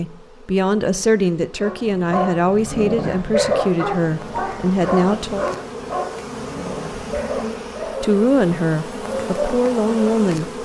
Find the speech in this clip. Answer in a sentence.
The speech can be heard from 0.0 to 5.5 s and from 8.0 to 10.5 s.